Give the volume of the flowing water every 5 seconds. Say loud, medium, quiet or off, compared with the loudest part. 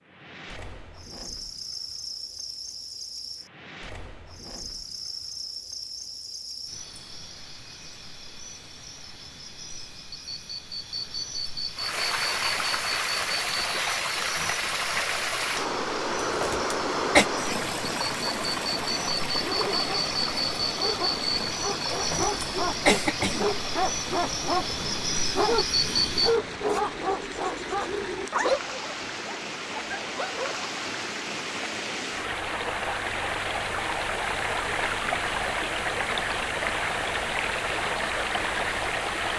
off, off, loud, loud, medium, medium, loud, loud.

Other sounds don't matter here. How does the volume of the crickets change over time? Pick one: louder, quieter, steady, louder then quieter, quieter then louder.
louder.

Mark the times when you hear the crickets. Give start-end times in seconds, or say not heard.
0.1-26.4.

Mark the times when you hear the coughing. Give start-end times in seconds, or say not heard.
16.3-17.2, 21.9-23.5.